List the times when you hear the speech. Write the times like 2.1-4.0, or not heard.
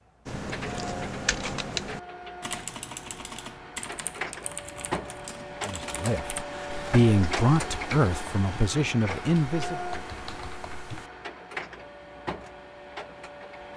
5.7-9.8.